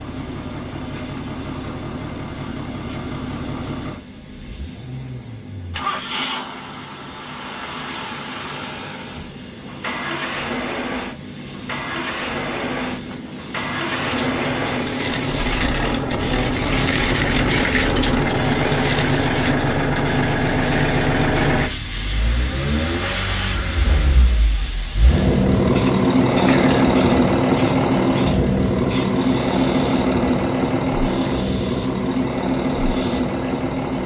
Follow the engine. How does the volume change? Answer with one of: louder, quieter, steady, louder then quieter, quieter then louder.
louder.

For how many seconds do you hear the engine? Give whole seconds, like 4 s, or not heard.
34 s.